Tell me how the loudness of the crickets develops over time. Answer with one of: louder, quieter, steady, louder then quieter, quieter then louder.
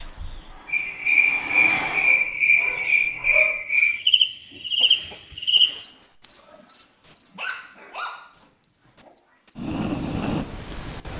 quieter.